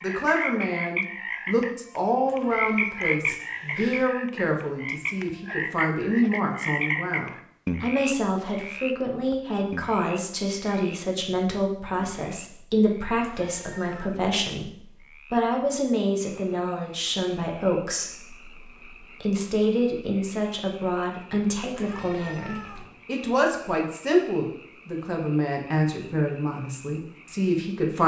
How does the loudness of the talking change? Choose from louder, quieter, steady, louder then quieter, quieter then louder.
steady.